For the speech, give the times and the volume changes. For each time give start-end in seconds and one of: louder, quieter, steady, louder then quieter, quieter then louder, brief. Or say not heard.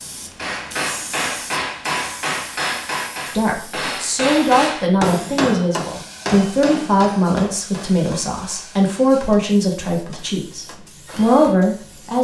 3.2-12.1 steady.